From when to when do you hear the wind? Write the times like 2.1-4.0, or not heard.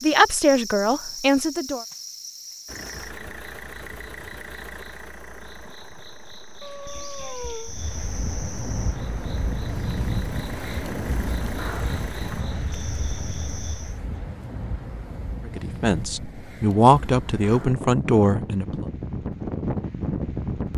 7.7-20.7.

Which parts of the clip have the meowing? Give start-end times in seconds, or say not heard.
6.6-7.8.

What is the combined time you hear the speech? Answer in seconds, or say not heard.
5 s.